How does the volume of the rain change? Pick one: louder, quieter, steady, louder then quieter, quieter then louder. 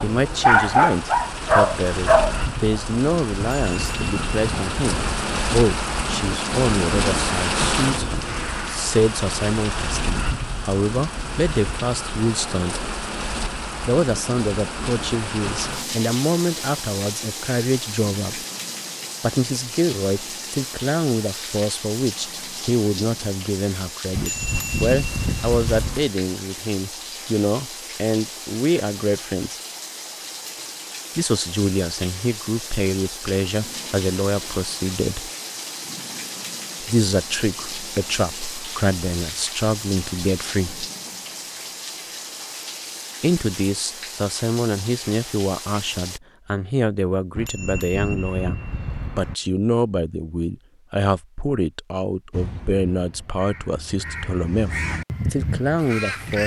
quieter.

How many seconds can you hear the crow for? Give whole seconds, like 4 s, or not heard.
4 s.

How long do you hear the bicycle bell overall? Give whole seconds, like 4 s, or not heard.
6 s.